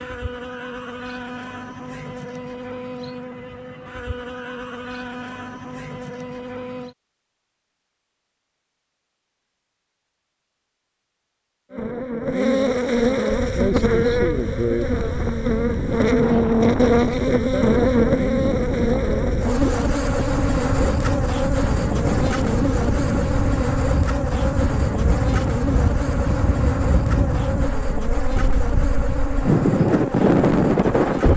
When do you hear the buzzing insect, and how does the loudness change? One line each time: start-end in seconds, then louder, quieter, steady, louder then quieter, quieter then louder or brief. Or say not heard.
0.0-7.0 steady
11.7-31.3 quieter.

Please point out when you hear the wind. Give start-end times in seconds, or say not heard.
13.2-31.3.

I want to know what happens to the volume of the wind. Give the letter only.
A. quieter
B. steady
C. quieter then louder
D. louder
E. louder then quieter
D.